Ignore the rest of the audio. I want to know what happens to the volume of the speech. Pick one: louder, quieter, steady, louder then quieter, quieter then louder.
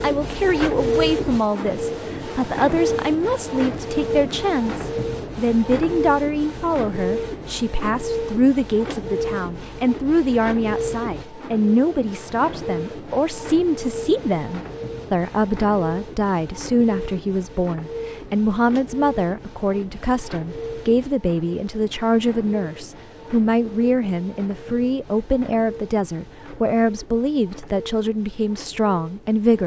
steady.